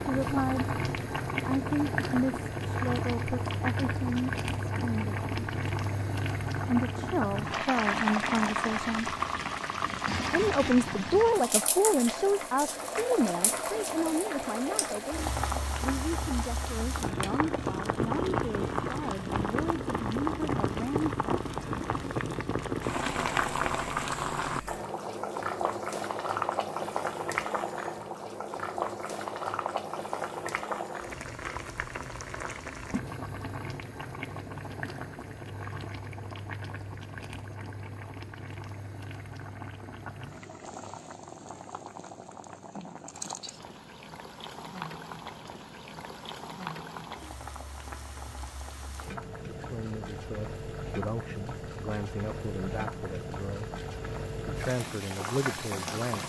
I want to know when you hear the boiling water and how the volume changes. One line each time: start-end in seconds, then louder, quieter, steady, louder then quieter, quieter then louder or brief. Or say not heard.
0.0-56.2 quieter.